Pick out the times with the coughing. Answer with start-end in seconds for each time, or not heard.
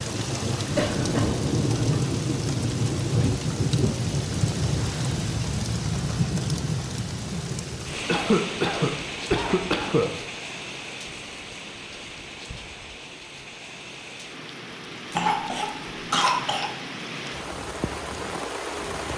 0.8-1.4, 8.1-10.2, 15.1-16.7.